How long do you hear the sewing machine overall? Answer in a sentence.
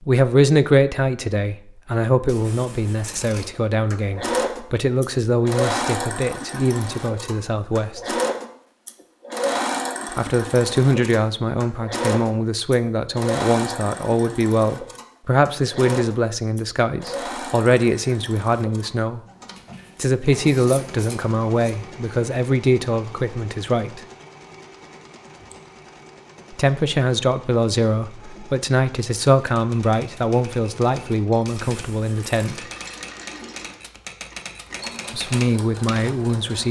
You can hear the sewing machine for 33 seconds altogether.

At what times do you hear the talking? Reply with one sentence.
You can hear the talking from 0.0 to 8.2 s, from 10.2 to 19.2 s, from 19.9 to 24.0 s, from 26.5 to 32.6 s and from 35.1 to 36.6 s.